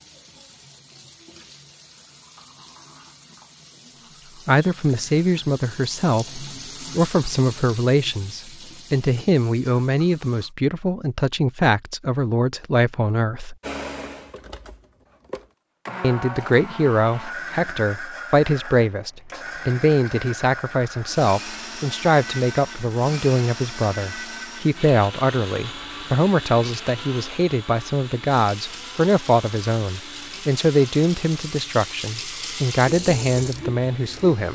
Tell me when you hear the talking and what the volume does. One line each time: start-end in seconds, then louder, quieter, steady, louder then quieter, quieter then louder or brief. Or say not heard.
4.5-13.6 steady
16.0-34.5 steady.